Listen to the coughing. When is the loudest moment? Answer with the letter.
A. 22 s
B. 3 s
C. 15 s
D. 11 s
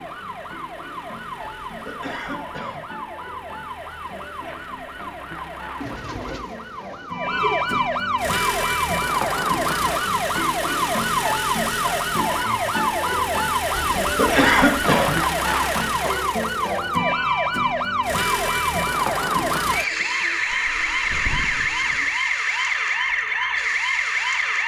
C.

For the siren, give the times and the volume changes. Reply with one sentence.
You can hear the siren from 0.0 to 24.6 s, getting louder.